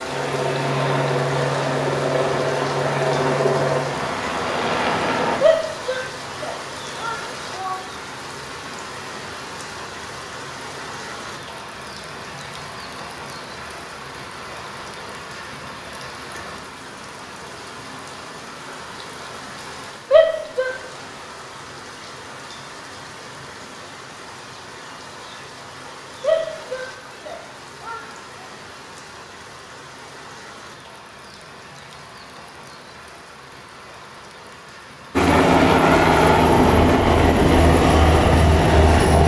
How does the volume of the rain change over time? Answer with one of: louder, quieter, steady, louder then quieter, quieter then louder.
quieter.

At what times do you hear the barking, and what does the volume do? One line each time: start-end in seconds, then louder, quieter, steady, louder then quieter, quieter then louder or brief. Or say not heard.
not heard.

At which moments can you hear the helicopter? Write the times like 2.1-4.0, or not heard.
0.0-5.4, 35.1-39.2.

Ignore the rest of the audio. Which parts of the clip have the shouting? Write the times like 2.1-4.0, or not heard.
5.4-7.8, 20.1-20.8, 26.2-28.1.